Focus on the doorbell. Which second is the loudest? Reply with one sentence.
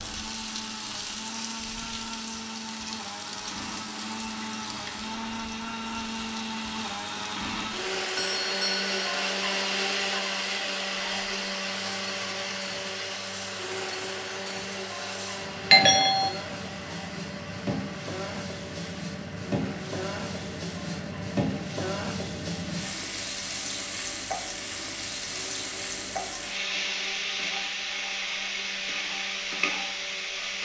The volume of the doorbell peaks at 16 seconds.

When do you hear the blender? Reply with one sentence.
The blender can be heard from 0.0 to 30.6 s.